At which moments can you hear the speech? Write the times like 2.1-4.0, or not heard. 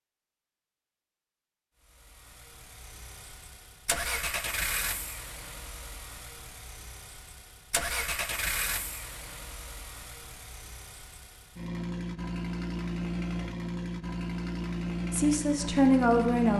15.1-16.5.